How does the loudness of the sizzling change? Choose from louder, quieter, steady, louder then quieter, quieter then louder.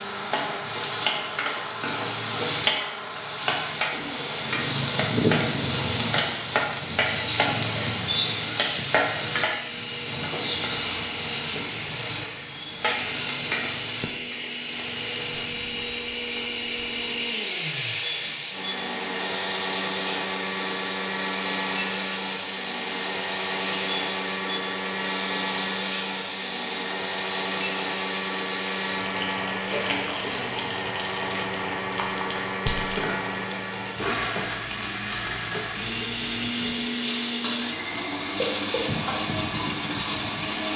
quieter.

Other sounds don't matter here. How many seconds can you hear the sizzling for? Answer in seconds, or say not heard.
41 s.